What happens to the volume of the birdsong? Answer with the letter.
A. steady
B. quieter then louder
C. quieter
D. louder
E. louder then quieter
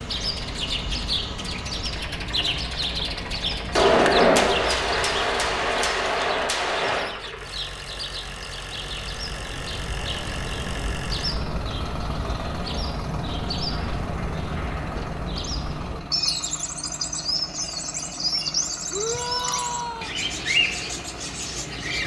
B.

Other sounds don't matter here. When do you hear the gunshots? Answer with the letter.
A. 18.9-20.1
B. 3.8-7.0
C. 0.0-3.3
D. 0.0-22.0
B.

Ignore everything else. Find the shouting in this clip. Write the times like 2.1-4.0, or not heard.
18.9-20.1.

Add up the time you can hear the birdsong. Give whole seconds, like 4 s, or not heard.
22 s.